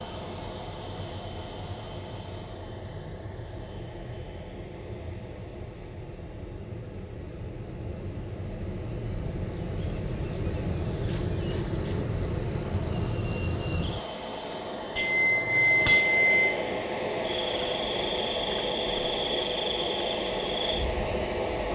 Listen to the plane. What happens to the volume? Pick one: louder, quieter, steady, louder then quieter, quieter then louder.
quieter then louder.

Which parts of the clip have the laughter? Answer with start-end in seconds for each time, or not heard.
not heard.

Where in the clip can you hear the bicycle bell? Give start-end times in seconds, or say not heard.
14.9-16.6.